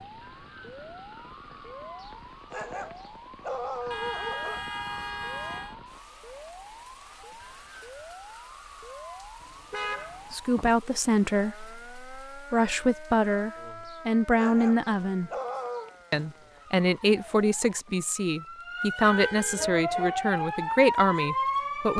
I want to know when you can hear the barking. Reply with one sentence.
The barking can be heard from 2.0 to 4.6 s and from 13.8 to 15.9 s.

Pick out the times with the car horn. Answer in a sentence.
You can hear the car horn from 3.9 to 5.8 s, from 9.4 to 10.8 s and from 19.0 to 20.1 s.